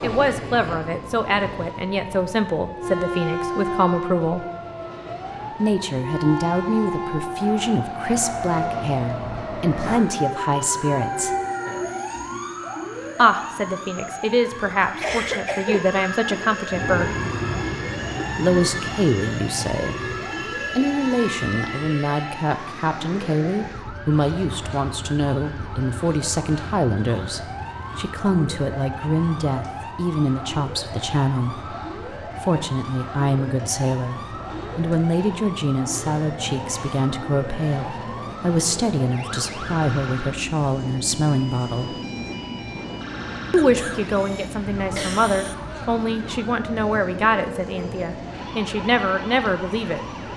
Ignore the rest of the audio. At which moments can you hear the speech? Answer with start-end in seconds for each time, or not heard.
0.0-4.5, 5.5-11.3, 13.2-17.1, 18.4-20.1, 20.8-42.0, 43.5-50.0.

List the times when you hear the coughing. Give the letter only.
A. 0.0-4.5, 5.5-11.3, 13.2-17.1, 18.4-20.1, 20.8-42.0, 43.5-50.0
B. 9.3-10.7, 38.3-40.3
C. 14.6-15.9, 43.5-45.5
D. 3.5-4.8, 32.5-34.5
C.